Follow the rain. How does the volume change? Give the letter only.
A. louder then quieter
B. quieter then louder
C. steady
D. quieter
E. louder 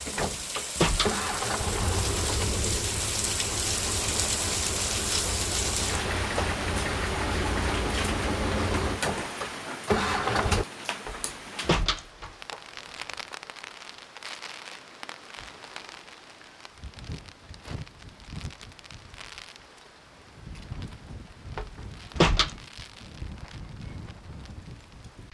D.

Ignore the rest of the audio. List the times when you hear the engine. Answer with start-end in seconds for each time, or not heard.
0.0-10.7.